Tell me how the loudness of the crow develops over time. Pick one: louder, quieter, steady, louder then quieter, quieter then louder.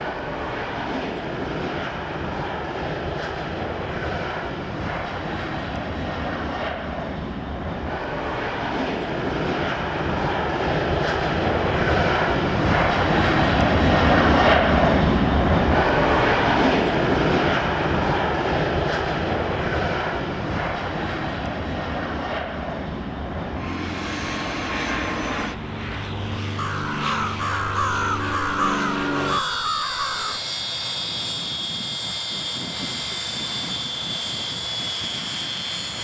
louder.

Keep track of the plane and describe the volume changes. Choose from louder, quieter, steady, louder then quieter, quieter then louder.
louder then quieter.